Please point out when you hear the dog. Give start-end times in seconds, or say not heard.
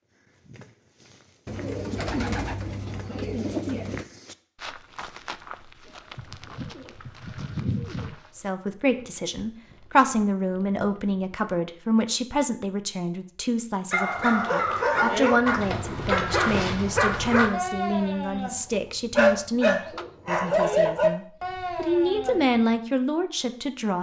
13.9-22.6.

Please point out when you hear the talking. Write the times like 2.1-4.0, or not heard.
8.3-23.9.